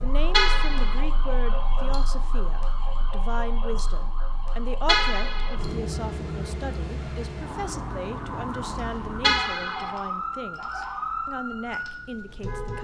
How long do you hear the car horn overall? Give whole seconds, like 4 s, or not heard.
2 s.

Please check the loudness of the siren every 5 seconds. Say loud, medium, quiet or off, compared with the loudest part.
medium, loud, loud.